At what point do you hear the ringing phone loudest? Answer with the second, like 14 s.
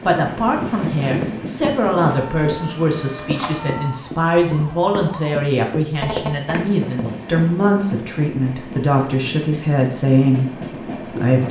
6 s.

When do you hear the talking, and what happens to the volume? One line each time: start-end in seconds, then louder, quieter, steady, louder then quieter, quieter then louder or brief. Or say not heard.
0.1-11.4 steady.